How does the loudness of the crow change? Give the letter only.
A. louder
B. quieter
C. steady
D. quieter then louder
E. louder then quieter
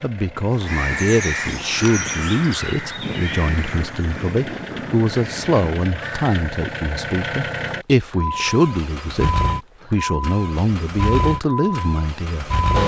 B.